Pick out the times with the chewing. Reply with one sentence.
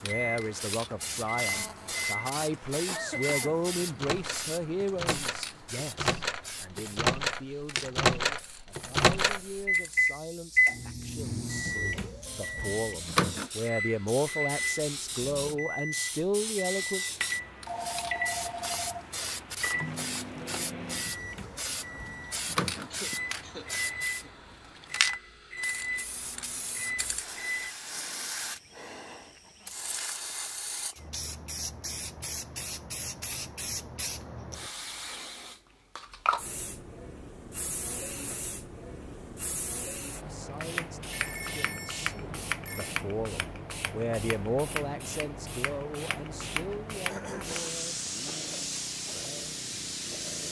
The chewing can't be heard in this clip.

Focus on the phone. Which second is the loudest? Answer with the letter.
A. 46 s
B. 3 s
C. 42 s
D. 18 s
D.